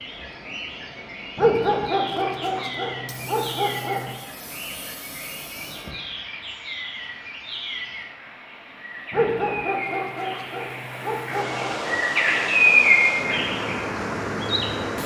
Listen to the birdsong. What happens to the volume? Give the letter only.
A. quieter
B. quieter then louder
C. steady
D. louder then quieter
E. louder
E.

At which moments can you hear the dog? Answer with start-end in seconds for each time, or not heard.
1.4-4.2, 9.1-11.8.